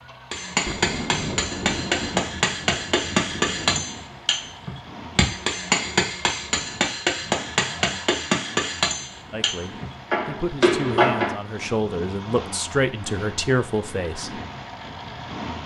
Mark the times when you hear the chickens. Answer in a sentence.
The chickens can't be heard in this clip.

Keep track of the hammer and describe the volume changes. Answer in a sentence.
The loudness of the hammer stays about the same.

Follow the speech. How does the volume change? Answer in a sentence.
The loudness of the speech goes up.